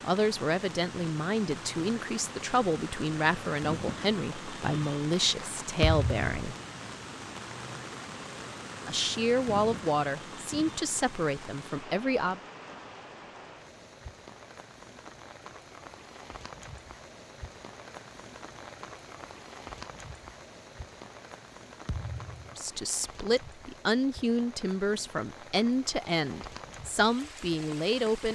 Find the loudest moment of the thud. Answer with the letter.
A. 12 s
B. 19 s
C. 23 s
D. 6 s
D.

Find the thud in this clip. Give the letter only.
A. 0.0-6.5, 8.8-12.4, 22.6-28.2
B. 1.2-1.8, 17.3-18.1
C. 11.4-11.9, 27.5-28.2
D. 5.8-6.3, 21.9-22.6
D.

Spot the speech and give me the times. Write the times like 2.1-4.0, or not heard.
0.0-6.5, 8.8-12.4, 22.6-28.2.